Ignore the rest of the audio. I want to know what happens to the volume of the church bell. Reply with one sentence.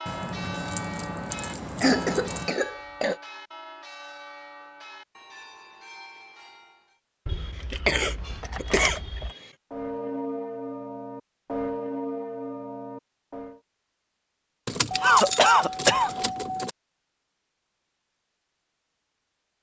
The loudness of the church bell goes down, then up.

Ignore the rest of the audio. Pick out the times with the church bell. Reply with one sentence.
The church bell can be heard from 0.0 to 7.0 s and from 9.7 to 13.6 s.